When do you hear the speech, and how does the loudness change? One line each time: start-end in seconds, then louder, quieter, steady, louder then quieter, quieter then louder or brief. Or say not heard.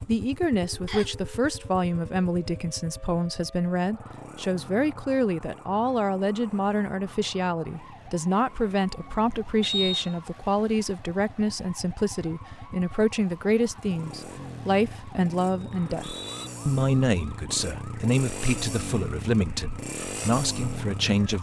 0.1-21.3 steady.